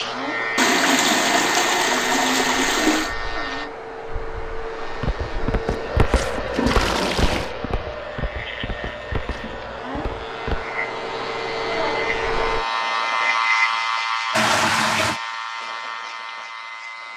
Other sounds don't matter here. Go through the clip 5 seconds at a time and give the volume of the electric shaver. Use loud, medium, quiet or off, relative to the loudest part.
loud, quiet, loud, medium.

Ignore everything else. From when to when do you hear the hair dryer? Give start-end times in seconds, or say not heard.
0.0-12.7.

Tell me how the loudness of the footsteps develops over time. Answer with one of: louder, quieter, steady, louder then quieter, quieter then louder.
quieter.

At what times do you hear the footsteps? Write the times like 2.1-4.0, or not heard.
4.8-10.7.